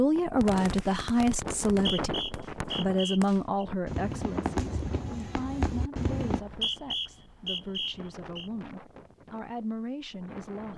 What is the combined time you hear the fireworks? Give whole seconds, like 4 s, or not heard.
6 s.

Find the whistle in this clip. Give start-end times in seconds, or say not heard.
1.7-3.6, 6.3-8.5.